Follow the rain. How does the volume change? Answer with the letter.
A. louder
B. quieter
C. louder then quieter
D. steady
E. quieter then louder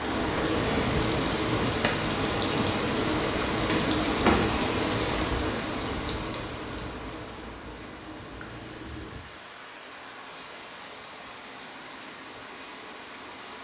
B.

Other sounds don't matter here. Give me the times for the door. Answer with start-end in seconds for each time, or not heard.
3.5-4.6.